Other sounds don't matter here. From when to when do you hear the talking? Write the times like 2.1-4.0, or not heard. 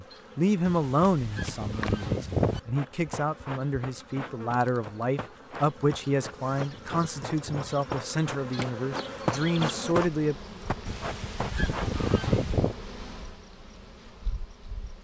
0.0-10.3.